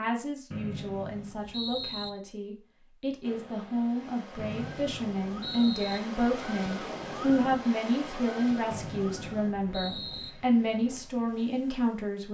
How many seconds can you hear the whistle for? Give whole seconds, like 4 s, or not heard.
5 s.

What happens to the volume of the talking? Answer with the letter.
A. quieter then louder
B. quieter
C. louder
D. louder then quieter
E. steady
C.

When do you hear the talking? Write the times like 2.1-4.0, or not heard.
0.0-12.2.